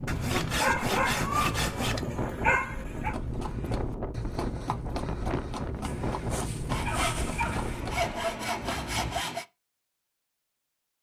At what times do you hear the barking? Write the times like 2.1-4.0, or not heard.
0.6-3.1, 5.8-7.8.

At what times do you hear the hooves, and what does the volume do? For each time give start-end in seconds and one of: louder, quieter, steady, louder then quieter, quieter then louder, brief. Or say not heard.
3.0-9.2 steady.